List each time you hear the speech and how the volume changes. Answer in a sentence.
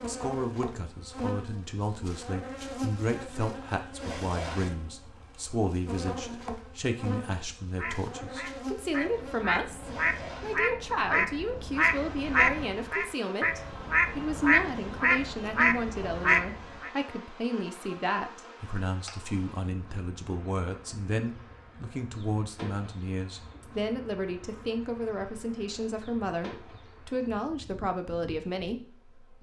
You can hear the speech from 0.1 to 29.3 s, at a steady volume.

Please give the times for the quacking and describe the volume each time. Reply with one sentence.
The quacking can be heard from 7.8 to 16.9 s, getting louder.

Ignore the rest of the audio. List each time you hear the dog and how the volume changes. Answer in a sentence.
The dog can't be heard in this clip.